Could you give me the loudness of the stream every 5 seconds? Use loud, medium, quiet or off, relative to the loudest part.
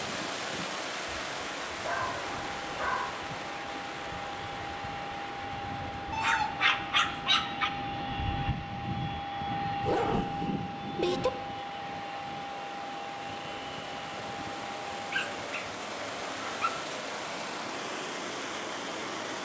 loud, medium, medium, loud.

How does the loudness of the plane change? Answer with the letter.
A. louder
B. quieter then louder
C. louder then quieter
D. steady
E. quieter
C.